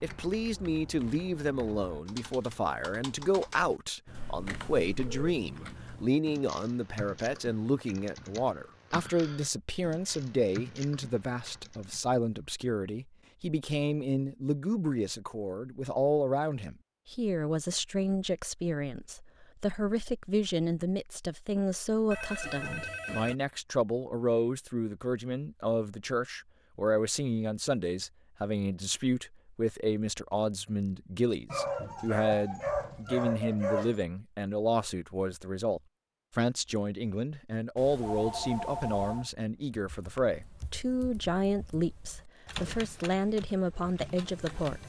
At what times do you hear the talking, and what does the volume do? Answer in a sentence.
You can hear the talking from 0.0 to 44.8 s, at a steady volume.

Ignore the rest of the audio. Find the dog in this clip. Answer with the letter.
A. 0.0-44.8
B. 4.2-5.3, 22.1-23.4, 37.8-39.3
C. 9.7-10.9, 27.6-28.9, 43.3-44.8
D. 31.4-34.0
D.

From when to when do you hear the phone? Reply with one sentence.
You can hear the phone from 4.2 to 5.3 s, from 22.1 to 23.4 s and from 37.8 to 39.3 s.